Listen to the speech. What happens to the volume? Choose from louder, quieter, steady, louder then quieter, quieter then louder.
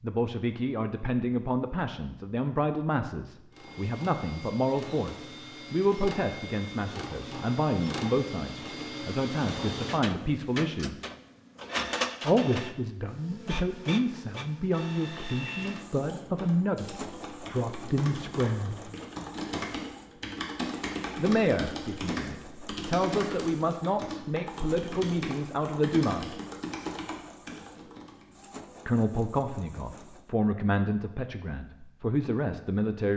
steady.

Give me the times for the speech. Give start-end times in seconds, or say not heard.
0.0-10.9, 12.2-18.9, 21.1-26.4, 28.9-33.1.